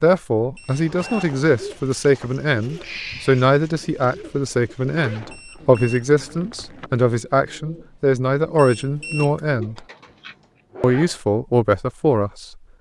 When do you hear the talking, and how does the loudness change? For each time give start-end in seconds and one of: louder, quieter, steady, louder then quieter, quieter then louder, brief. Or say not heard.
0.0-9.8 steady
10.8-12.6 brief.